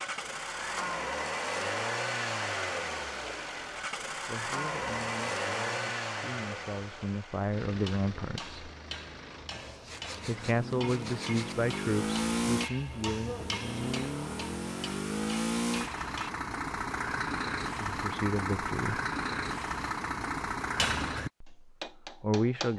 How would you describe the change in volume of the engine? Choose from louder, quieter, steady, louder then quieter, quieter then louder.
steady.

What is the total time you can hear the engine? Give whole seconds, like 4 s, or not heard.
21 s.